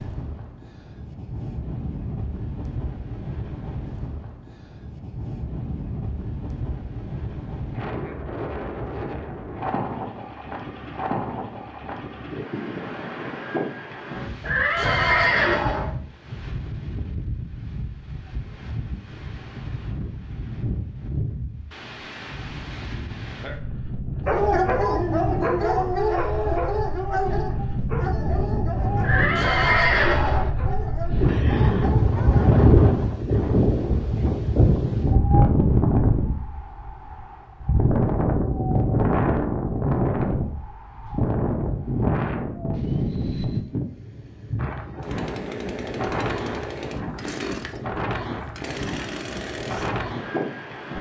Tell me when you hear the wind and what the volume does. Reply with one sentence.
You can hear the wind from 0.0 to 50.9 s, getting louder then quieter.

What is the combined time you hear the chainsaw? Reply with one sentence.
You can hear the chainsaw for 6 seconds altogether.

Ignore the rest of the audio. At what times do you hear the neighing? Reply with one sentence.
You can hear the neighing from 14.4 to 15.9 s and from 29.0 to 30.5 s.